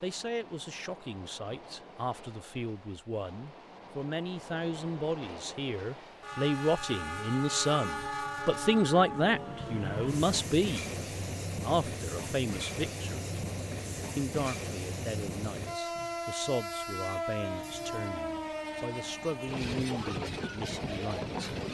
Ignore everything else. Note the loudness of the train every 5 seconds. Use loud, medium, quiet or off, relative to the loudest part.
quiet, loud, loud, loud, loud.